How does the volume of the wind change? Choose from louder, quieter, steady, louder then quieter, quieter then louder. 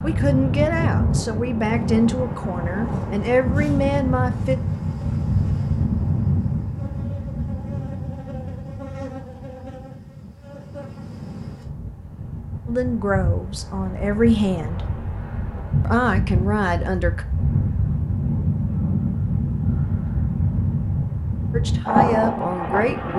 quieter then louder.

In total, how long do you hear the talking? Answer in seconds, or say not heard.
10 s.